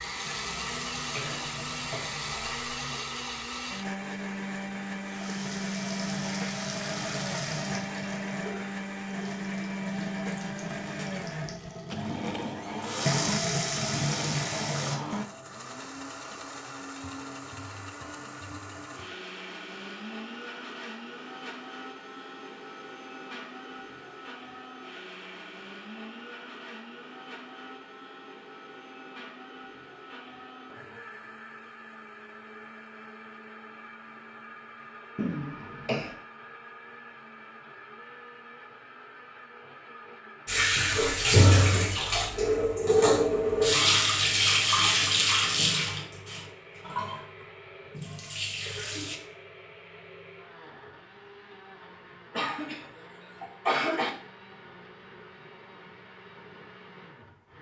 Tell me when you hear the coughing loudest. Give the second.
54 s.